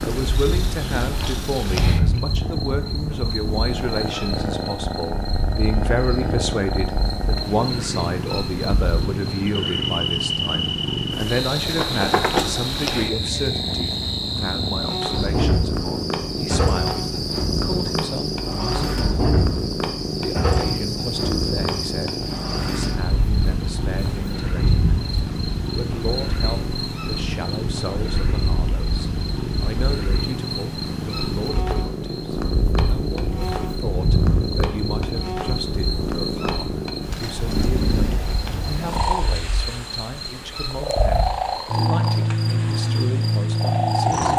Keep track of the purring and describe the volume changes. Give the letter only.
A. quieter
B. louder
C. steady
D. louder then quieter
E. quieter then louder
C.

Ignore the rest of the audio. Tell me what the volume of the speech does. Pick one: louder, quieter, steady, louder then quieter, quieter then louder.
quieter.